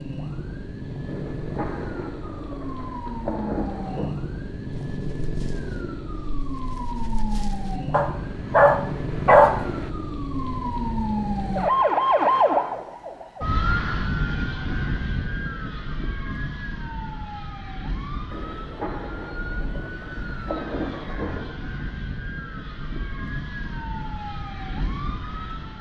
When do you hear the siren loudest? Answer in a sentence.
The volume of the siren peaks at 12 seconds.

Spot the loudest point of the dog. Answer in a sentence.
The volume of the dog peaks at 9 seconds.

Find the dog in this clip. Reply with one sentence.
You can hear the dog from 4.7 to 9.7 s.